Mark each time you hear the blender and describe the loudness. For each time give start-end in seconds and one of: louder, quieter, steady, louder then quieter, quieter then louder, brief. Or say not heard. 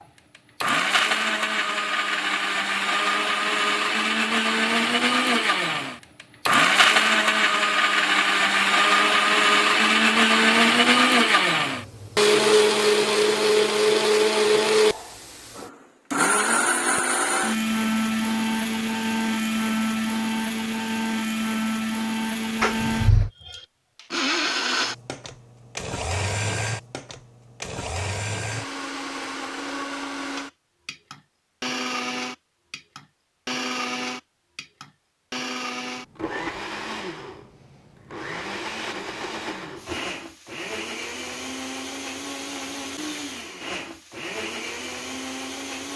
0.0-45.9 quieter.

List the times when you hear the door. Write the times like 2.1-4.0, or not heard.
22.6-23.3.